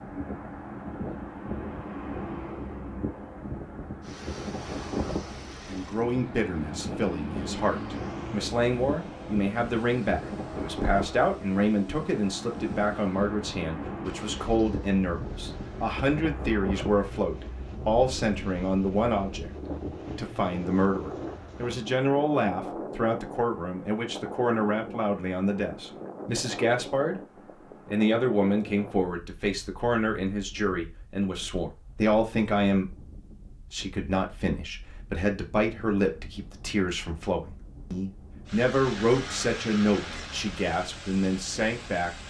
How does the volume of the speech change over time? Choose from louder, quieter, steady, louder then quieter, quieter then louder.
steady.